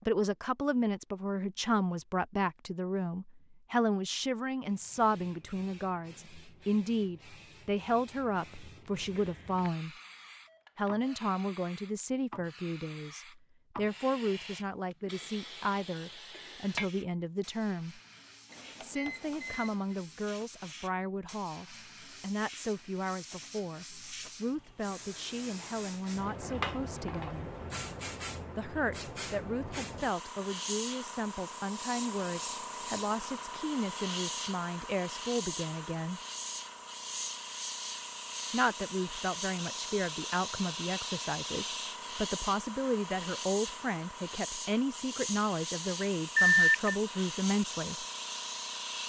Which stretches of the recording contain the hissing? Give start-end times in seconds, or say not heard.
4.6-49.0.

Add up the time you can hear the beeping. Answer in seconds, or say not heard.
3 s.